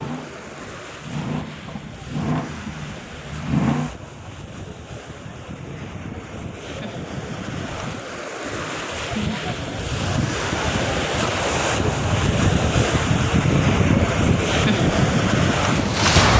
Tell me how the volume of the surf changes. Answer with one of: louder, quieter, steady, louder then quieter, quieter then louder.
louder.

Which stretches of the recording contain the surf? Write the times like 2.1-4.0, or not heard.
0.0-16.3.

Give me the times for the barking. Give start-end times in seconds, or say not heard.
not heard.